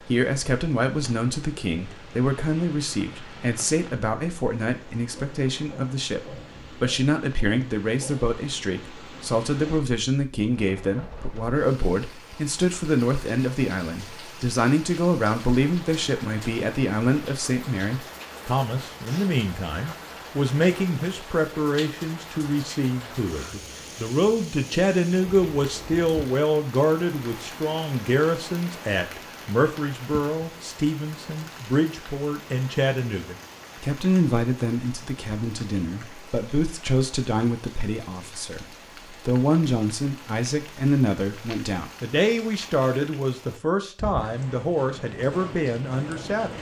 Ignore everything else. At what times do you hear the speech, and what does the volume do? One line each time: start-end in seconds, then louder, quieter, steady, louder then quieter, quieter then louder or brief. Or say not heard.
0.0-46.5 steady.